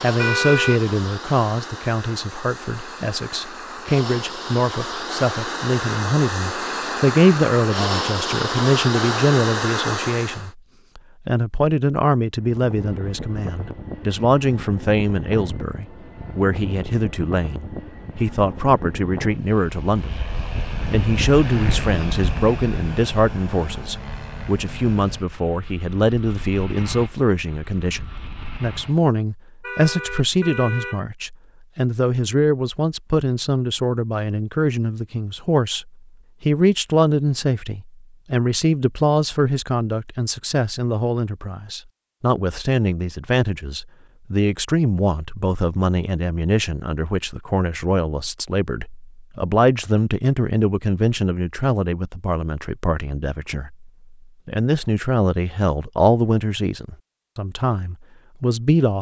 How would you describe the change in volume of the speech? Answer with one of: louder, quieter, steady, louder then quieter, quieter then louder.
steady.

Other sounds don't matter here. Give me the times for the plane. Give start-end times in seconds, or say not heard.
0.0-10.5, 12.3-29.1.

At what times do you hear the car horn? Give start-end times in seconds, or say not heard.
0.1-0.8, 29.6-31.1.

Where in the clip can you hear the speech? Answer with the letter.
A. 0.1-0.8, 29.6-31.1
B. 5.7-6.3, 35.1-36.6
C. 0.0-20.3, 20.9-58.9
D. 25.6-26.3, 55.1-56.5
C.